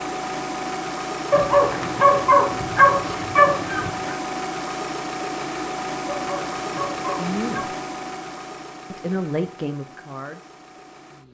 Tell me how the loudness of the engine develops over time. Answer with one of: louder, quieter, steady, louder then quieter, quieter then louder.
quieter.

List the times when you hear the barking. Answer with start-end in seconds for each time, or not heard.
1.3-4.2, 6.0-7.7.